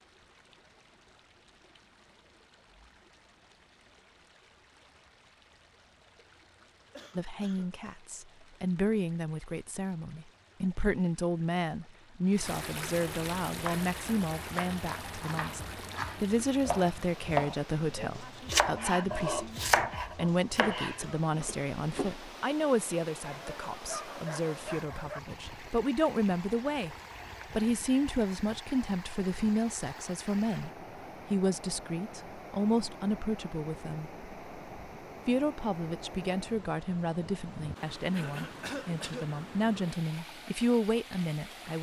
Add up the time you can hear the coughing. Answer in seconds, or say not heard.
3 s.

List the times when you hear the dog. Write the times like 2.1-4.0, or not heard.
23.3-25.2.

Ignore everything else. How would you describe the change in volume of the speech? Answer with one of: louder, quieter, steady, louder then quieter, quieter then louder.
steady.